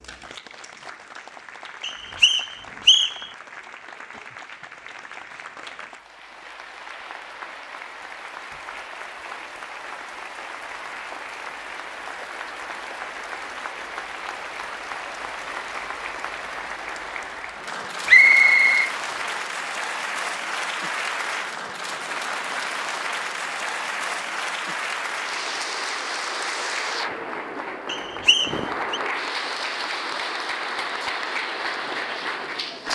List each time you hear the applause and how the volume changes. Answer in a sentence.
The applause can be heard from 0.0 to 32.9 s, getting louder.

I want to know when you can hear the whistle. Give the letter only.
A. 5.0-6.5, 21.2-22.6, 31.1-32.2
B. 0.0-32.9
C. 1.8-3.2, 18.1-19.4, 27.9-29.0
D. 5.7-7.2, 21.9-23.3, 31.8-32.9
C.